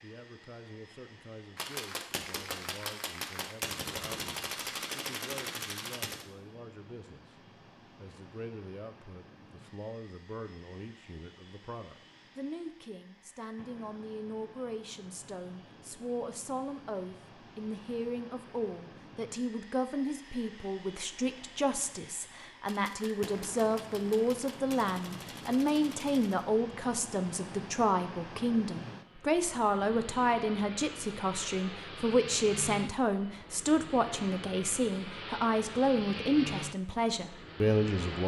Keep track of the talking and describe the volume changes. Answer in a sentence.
The volume of the talking goes up.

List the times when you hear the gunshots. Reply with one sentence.
You can hear the gunshots from 1.6 to 6.2 s and from 22.6 to 26.4 s.